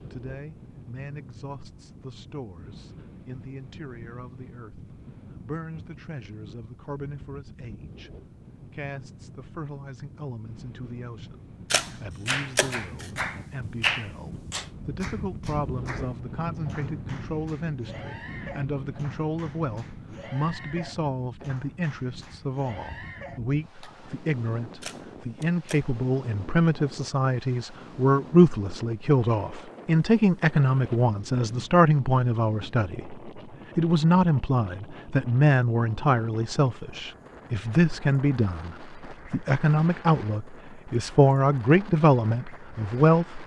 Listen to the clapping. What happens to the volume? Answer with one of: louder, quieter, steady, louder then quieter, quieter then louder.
quieter.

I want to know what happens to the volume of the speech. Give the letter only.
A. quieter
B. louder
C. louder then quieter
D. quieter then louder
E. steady
B.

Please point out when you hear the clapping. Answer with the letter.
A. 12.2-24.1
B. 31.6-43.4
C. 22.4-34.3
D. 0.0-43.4
A.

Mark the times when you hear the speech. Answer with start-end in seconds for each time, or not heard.
0.0-43.4.